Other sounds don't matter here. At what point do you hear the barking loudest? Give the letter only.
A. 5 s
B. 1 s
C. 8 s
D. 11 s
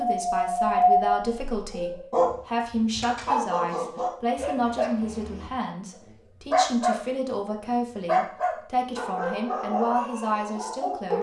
B.